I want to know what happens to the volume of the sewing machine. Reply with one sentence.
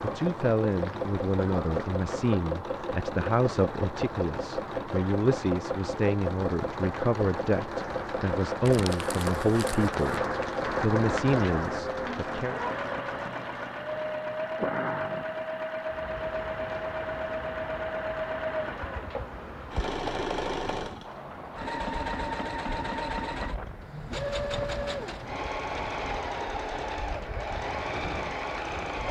The loudness of the sewing machine stays about the same.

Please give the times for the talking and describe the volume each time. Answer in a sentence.
The talking can be heard from 0.0 to 12.6 s, at a steady volume.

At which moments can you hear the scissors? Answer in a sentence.
You can't hear the scissors here.